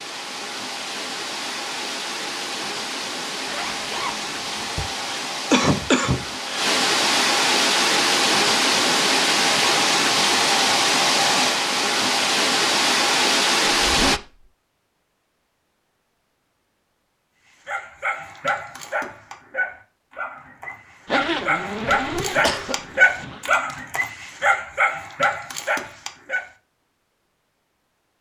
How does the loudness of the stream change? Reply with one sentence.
The loudness of the stream goes up.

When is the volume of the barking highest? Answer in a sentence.
The volume of the barking peaks at 23 seconds.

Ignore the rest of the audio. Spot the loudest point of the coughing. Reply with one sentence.
The volume of the coughing peaks at 6 seconds.